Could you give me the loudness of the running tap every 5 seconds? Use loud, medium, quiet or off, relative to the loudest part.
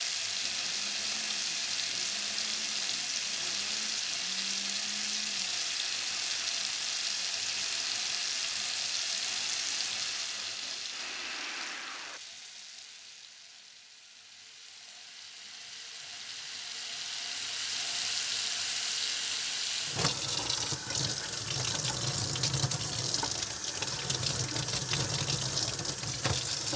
loud, loud, medium, loud, loud, loud.